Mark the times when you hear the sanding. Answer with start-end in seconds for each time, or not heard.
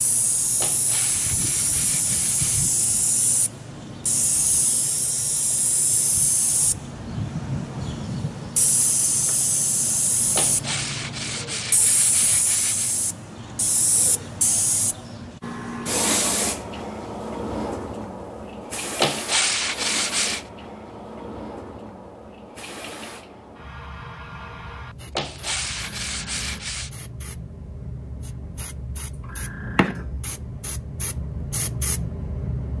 0.6-2.6, 10.3-13.0, 19.0-20.4, 25.1-26.9.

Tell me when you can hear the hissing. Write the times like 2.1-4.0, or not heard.
0.0-32.7.